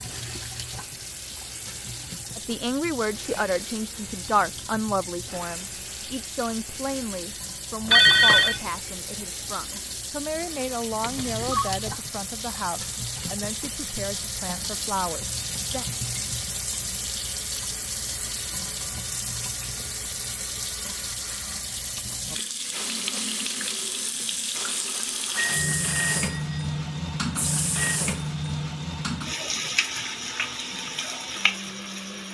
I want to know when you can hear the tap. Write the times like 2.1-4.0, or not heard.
0.0-32.2.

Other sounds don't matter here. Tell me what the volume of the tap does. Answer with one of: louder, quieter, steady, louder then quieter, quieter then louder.
louder.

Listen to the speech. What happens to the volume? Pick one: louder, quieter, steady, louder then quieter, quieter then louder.
quieter.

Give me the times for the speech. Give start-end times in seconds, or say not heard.
2.4-15.8.